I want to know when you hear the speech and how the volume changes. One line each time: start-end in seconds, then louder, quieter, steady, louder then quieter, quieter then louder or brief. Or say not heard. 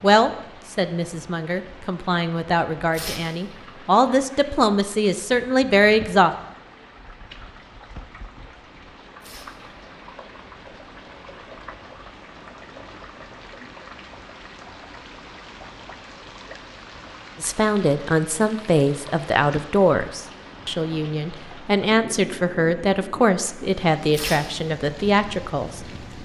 0.0-6.3 louder
17.4-25.9 steady.